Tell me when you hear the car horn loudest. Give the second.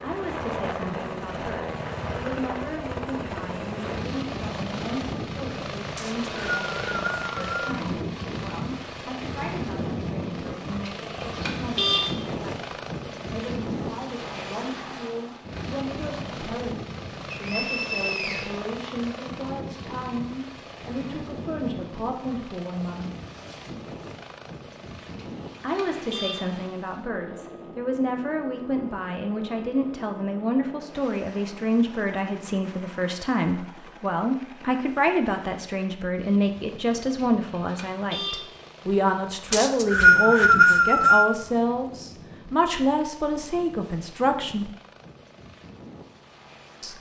12 s.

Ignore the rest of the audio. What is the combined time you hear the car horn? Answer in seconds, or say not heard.
4 s.